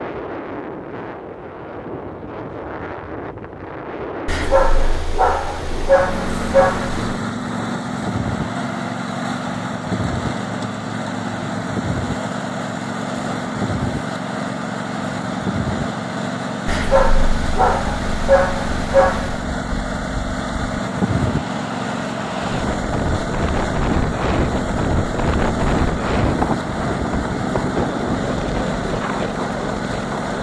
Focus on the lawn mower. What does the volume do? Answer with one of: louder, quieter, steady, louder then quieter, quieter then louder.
steady.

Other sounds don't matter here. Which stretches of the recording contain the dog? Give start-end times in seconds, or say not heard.
4.2-7.2, 16.6-19.4.